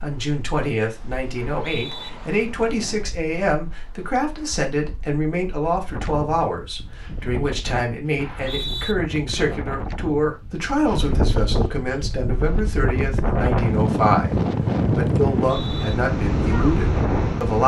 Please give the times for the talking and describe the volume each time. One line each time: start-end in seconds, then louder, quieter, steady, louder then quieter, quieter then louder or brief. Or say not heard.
0.0-14.3 steady
14.9-17.6 brief.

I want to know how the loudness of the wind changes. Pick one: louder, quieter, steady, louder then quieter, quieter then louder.
louder.